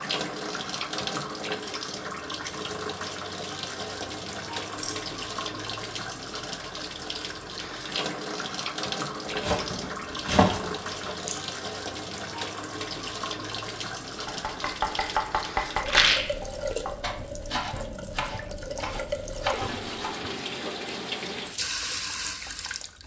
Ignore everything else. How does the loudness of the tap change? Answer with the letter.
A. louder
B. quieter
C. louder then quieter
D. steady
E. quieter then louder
D.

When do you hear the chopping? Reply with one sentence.
The chopping can be heard from 9.3 to 11.2 s and from 14.2 to 20.3 s.